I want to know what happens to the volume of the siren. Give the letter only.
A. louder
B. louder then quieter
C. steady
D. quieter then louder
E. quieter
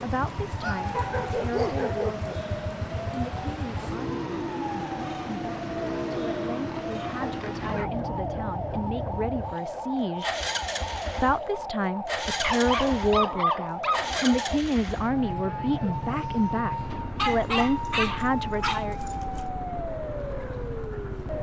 C.